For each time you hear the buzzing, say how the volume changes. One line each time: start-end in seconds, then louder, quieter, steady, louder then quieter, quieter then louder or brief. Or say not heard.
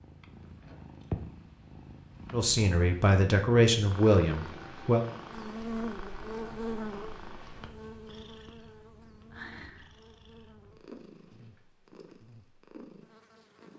5.3-13.7 quieter.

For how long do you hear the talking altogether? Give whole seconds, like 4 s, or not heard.
3 s.